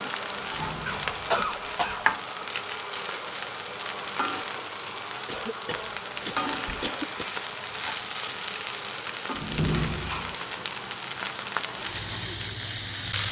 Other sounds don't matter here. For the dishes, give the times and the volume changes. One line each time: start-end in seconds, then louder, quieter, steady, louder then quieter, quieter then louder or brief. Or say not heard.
not heard.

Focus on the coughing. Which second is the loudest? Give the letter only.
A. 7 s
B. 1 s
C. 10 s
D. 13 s
B.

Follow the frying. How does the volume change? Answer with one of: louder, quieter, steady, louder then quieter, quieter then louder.
steady.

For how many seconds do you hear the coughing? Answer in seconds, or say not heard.
4 s.